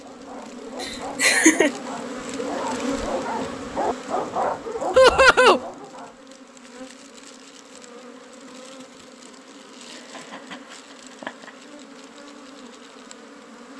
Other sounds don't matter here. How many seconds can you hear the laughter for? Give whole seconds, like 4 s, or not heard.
3 s.